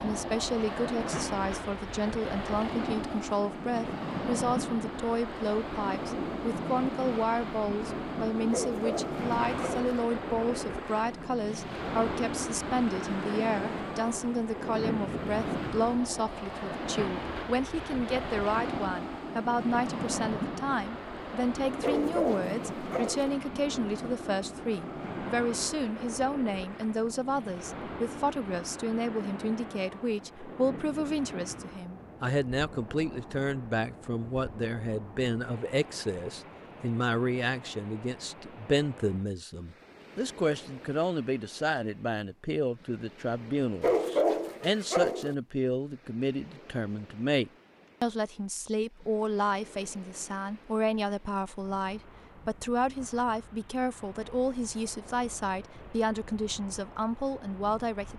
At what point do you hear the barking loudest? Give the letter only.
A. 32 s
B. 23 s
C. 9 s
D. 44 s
D.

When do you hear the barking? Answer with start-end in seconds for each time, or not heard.
8.5-9.8, 21.8-23.4, 43.8-45.4.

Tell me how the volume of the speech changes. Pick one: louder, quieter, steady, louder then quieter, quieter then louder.
steady.